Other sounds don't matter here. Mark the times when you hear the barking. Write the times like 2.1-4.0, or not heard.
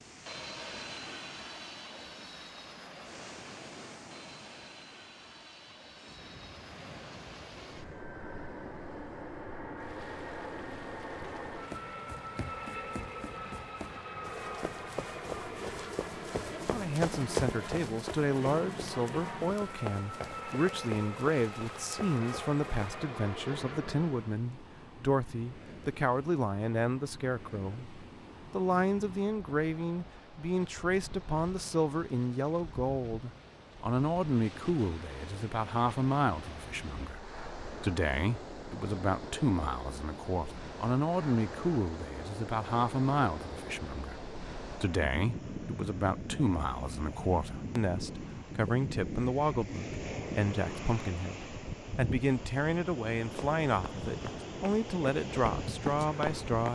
not heard.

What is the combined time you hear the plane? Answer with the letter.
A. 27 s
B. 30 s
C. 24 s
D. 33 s
C.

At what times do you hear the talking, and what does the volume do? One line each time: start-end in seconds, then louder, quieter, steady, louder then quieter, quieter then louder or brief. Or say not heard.
16.6-56.7 steady.